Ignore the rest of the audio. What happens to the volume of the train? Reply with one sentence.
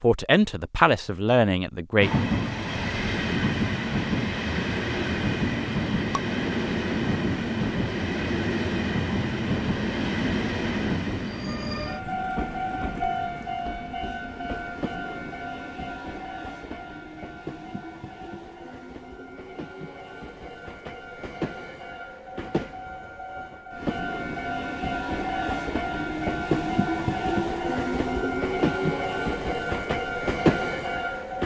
The volume of the train goes down, then up.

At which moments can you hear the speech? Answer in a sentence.
You can hear the speech from 0.0 to 2.1 s.